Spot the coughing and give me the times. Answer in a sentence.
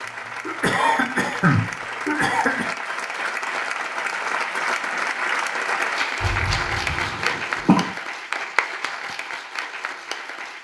The coughing can be heard from 0.0 to 2.6 s and from 6.2 to 7.9 s.